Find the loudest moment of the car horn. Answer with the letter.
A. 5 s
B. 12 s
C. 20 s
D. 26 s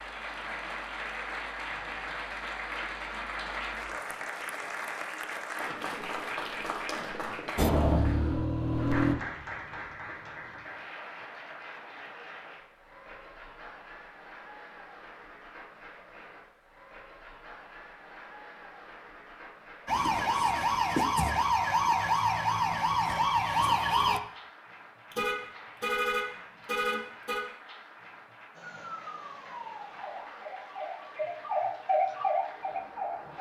D.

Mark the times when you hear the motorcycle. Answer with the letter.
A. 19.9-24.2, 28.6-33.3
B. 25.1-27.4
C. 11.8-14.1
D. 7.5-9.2
D.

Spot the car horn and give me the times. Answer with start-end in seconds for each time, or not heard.
25.1-27.4.